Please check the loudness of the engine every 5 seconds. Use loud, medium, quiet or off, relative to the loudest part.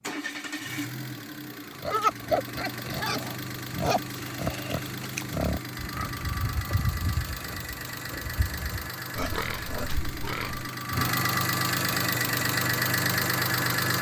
medium, medium, loud.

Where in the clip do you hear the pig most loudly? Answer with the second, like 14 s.
2 s.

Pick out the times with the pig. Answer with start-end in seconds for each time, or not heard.
1.8-10.7.